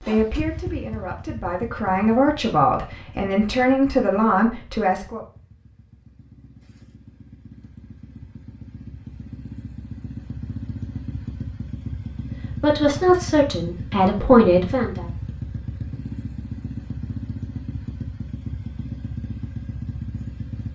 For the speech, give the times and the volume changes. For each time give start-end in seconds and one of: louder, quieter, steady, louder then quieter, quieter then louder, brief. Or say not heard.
0.0-5.2 louder
12.6-15.1 brief.